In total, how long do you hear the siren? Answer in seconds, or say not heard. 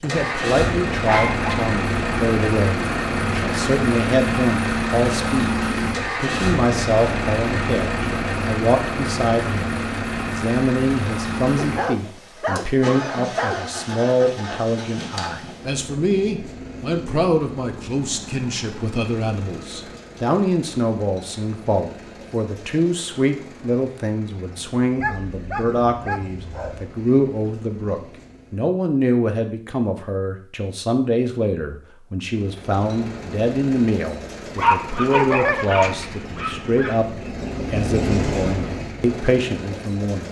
not heard.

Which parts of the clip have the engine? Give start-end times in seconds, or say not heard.
0.0-28.7, 32.2-40.2.